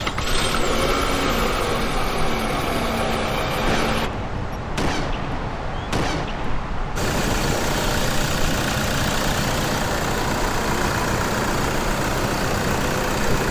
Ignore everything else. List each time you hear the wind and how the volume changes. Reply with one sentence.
You can hear the wind from 0.0 to 13.4 s, at a steady volume.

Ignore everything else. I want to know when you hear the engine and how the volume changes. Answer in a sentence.
The engine can be heard from 0.0 to 4.1 s, at a steady volume; and from 7.0 to 13.4 s, at a steady volume.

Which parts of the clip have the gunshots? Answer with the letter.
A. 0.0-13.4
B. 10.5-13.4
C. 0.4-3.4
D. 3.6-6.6
D.